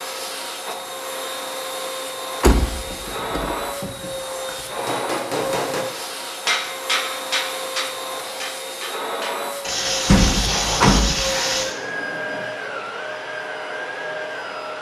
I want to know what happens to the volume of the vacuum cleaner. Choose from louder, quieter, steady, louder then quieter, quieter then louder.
steady.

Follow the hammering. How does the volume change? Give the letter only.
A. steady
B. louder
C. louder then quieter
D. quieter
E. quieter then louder
D.